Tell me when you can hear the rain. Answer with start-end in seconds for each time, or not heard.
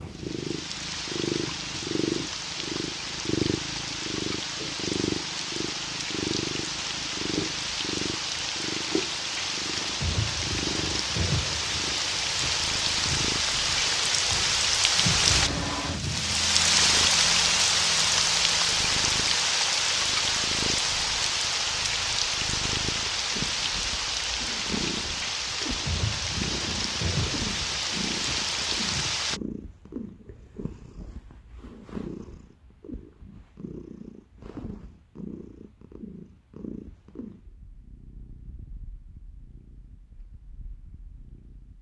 0.0-29.4.